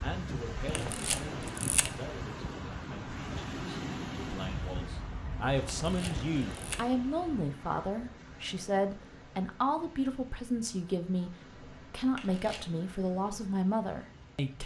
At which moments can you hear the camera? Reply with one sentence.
The camera can be heard from 0.7 to 1.9 s, from 5.8 to 6.8 s and from 12.1 to 12.7 s.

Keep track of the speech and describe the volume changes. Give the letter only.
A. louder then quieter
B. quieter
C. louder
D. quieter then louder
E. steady
C.